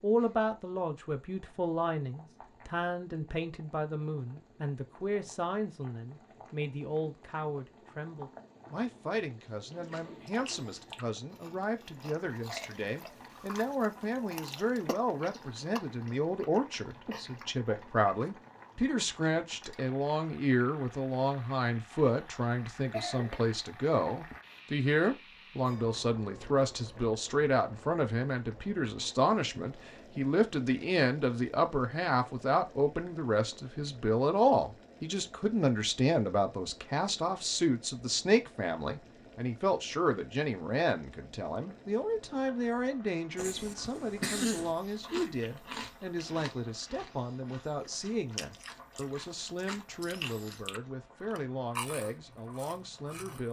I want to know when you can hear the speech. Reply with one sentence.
The speech can be heard from 0.0 to 53.4 s.